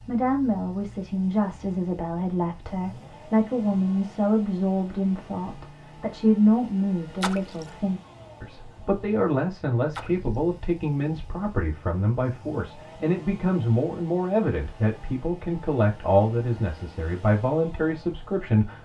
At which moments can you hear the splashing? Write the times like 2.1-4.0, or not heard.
7.2-7.7, 9.9-10.3.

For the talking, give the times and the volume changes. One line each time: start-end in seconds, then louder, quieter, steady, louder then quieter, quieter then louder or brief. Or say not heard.
0.1-18.7 steady.